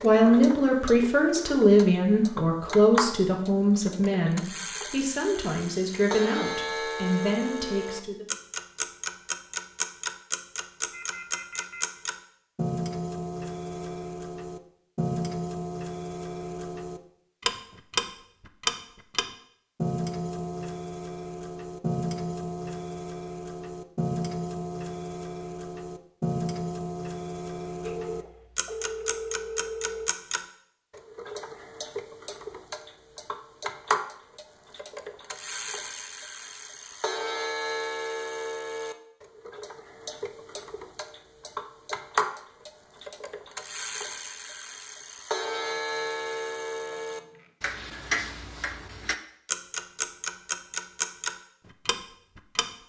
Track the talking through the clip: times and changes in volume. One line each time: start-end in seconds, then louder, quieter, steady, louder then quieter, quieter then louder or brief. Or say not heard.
0.0-8.2 quieter.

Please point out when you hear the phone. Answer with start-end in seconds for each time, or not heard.
10.9-11.8, 27.8-30.1, 45.5-47.5.